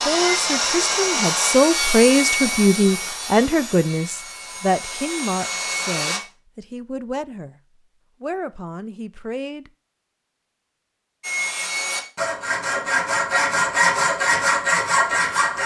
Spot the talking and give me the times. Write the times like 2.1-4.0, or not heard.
0.0-7.6, 8.2-9.7.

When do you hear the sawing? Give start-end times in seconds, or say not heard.
0.0-6.2, 11.2-15.6.